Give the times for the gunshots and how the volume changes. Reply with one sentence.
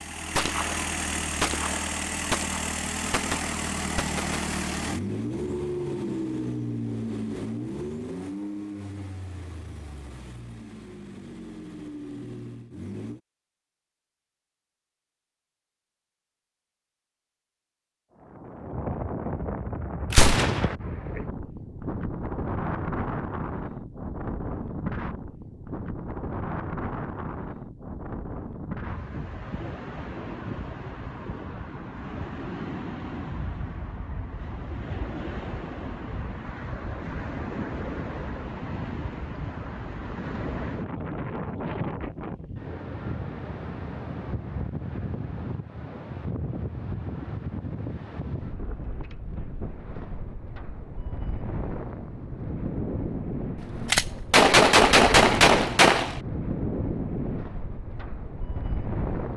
The gunshots can be heard from 0.3 to 4.4 s, getting louder then quieter; briefly from 20.1 to 20.8 s; and briefly from 53.6 to 56.2 s.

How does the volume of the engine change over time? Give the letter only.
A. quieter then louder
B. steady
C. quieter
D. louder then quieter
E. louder
C.